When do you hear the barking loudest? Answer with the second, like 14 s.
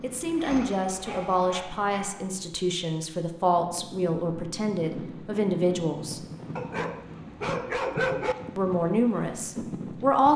8 s.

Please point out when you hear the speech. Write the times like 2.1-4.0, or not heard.
0.0-6.2, 8.6-10.3.